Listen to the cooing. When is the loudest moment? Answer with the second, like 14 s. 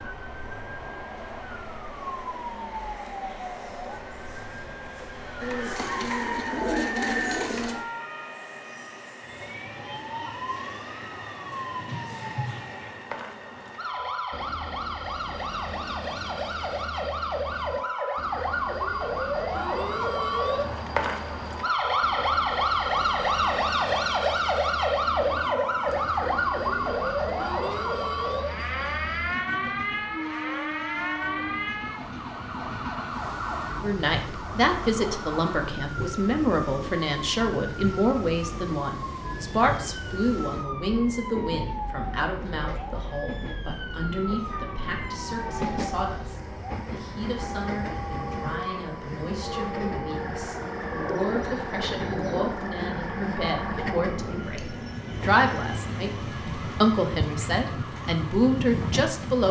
7 s.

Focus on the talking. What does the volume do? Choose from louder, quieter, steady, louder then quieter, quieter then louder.
quieter then louder.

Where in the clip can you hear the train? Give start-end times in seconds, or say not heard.
0.0-59.4.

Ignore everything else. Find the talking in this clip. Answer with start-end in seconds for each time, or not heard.
33.8-59.4.